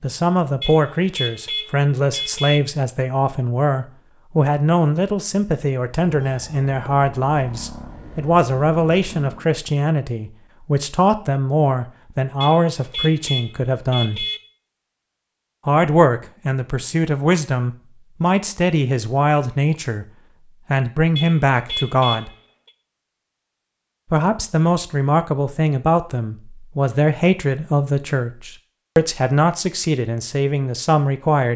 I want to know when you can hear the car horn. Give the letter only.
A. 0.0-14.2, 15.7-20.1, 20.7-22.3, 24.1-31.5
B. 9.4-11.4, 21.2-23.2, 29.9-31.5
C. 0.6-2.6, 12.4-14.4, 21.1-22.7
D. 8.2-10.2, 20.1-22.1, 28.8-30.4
C.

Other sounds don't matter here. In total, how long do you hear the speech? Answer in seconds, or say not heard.
28 s.